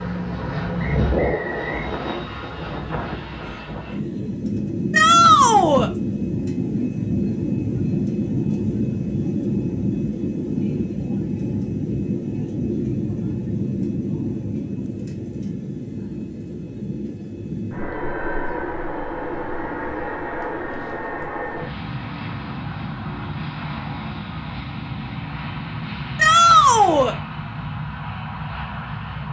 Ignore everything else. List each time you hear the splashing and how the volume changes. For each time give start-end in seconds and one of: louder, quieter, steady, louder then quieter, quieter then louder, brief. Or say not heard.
not heard.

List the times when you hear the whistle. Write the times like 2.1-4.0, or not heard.
0.8-1.9.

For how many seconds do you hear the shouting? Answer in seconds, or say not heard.
2 s.